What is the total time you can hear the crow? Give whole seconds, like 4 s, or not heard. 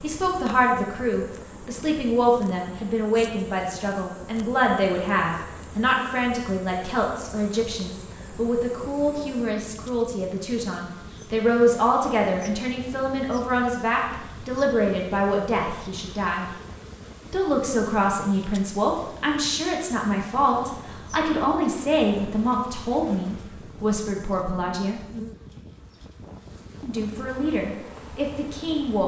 not heard.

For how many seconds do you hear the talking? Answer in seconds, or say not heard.
26 s.